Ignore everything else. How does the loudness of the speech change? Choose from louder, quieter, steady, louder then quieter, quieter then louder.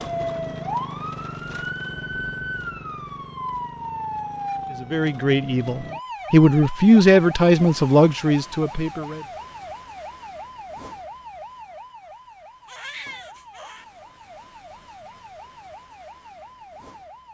louder then quieter.